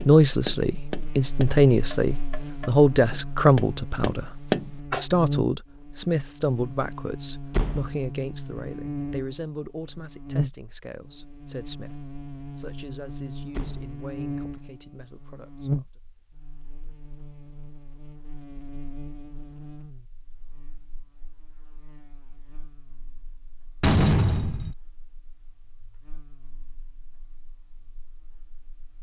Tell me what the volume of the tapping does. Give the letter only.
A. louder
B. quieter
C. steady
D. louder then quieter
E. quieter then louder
E.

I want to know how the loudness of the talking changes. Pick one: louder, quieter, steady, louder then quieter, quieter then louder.
quieter.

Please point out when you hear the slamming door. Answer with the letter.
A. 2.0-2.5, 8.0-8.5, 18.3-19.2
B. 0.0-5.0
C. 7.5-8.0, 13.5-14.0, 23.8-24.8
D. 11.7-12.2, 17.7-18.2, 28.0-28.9
C.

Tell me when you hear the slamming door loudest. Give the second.
24 s.